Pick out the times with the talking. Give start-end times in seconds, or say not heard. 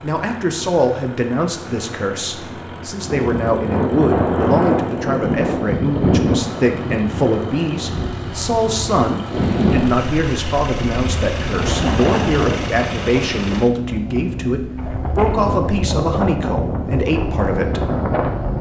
0.0-17.8.